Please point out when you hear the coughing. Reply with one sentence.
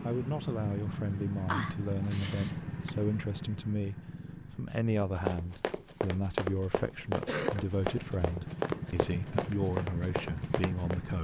You can hear the coughing from 1.4 to 2.9 s and from 7.2 to 7.7 s.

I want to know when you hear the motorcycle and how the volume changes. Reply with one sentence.
You can hear the motorcycle from 0.0 to 11.1 s, getting quieter then louder.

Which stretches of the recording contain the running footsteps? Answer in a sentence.
You can hear the running footsteps from 5.0 to 11.0 s.